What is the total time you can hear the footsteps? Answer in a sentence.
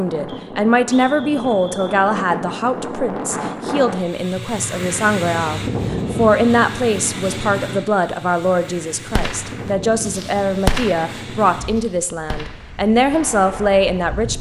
The footsteps can't be heard in this clip.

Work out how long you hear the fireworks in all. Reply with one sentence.
You can hear the fireworks for 5 seconds altogether.